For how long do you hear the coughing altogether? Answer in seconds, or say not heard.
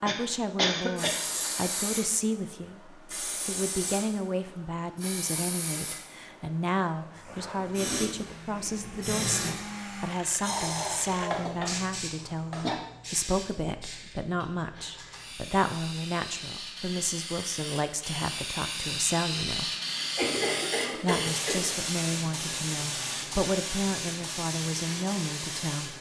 4 s.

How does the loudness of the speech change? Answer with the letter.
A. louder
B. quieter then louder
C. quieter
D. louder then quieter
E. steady
E.